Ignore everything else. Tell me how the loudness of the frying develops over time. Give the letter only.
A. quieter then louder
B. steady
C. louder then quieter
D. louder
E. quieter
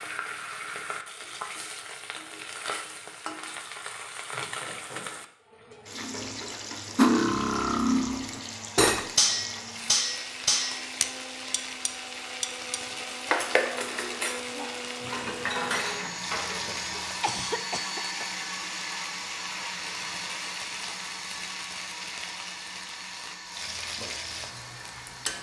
B.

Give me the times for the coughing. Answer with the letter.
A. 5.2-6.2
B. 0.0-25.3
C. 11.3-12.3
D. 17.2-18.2
D.